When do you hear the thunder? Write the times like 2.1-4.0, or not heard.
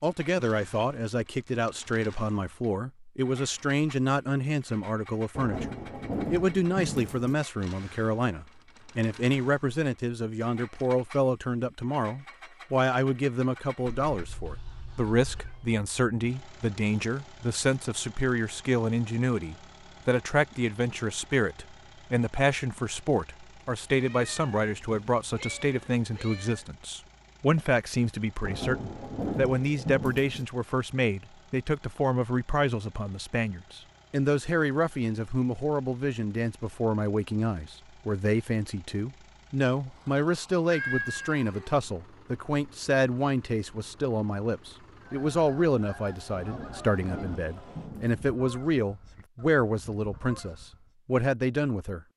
5.3-7.3, 28.4-30.4, 46.3-48.4.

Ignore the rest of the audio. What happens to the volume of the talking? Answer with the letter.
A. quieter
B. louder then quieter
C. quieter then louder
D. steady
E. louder
D.